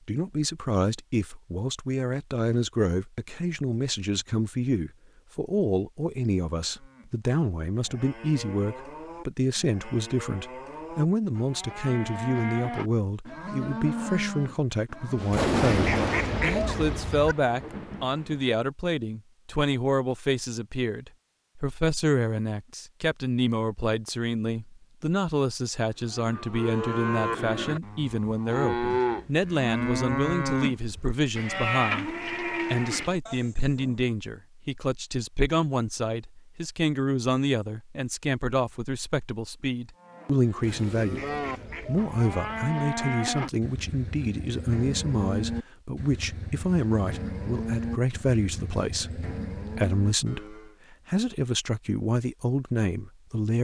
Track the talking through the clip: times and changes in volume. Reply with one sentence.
The talking can be heard from 0.1 to 41.2 s, at a steady volume; and from 41.8 to 53.5 s, at a steady volume.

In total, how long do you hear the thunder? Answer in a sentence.
You can hear the thunder for 3 seconds altogether.